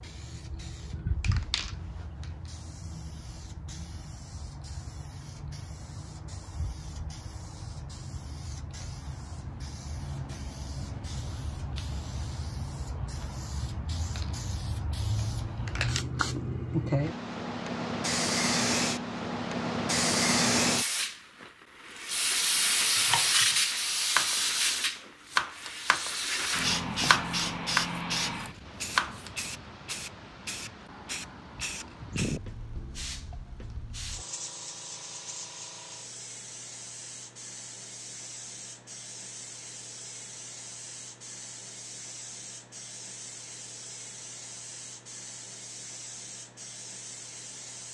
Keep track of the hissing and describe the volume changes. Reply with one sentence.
The loudness of the hissing goes up, then down.